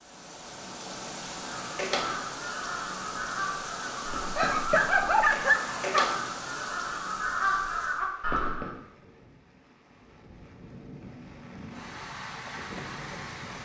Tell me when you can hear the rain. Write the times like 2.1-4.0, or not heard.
0.0-13.6.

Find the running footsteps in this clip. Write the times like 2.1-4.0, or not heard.
not heard.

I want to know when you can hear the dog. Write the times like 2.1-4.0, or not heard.
4.3-6.2.